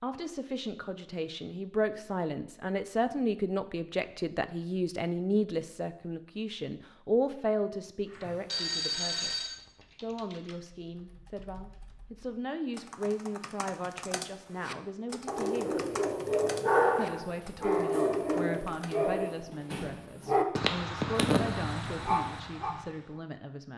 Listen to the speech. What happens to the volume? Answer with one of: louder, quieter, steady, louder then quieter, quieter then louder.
quieter.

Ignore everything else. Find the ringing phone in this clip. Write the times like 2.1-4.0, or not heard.
8.2-9.6.